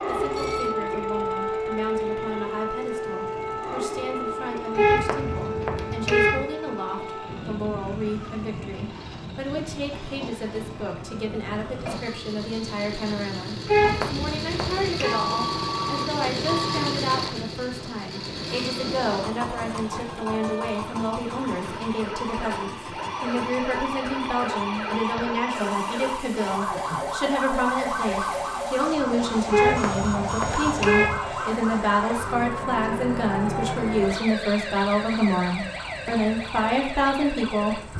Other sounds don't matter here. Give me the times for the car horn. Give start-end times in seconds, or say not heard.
4.8-6.5, 13.7-15.2, 29.5-31.2.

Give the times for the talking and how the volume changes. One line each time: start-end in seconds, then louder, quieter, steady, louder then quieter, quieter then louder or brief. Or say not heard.
0.1-37.8 louder.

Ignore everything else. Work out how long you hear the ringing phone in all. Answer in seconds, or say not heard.
4 s.